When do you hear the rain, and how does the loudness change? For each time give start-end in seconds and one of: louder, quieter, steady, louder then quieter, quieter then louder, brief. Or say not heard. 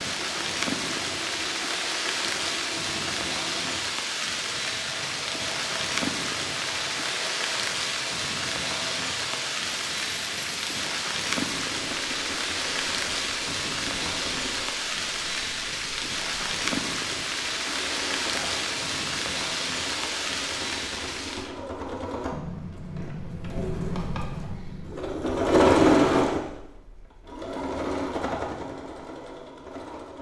0.0-21.6 steady.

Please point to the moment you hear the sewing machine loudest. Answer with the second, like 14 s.
26 s.